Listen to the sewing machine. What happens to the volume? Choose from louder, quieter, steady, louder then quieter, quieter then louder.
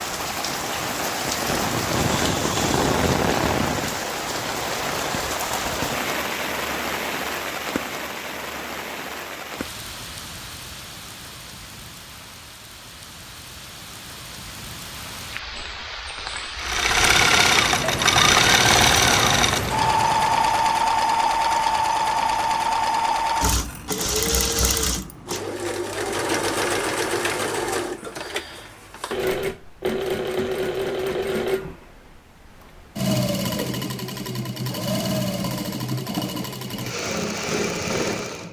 quieter.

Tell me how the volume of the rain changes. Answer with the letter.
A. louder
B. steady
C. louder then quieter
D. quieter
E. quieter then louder
E.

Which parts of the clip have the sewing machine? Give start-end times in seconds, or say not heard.
16.6-38.4.